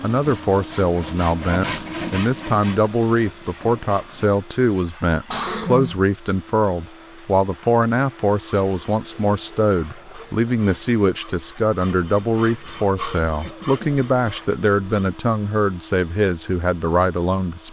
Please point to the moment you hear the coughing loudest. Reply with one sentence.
The loudest moment of the coughing is at 6 seconds.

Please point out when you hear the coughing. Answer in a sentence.
You can hear the coughing from 5.2 to 6.0 s and from 13.4 to 14.4 s.